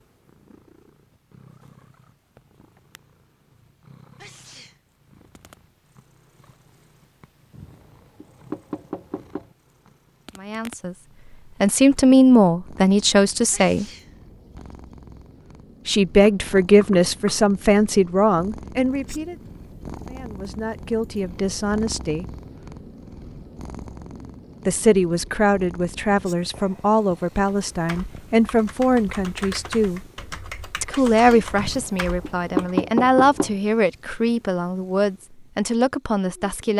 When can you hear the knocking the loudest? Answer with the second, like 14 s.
33 s.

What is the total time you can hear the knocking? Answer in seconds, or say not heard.
5 s.